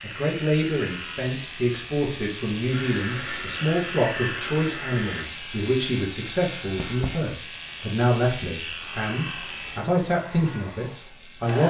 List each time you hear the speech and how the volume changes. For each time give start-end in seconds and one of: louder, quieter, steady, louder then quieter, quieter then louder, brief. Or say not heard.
0.0-11.6 steady.